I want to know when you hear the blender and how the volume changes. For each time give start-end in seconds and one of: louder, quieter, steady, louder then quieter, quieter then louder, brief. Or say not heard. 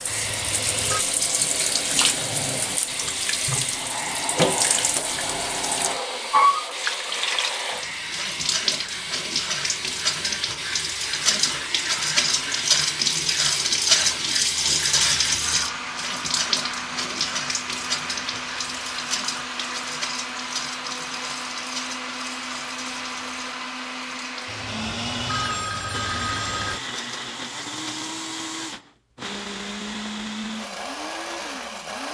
0.0-32.0 steady.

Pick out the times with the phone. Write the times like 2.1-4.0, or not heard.
0.1-1.1, 24.4-26.8.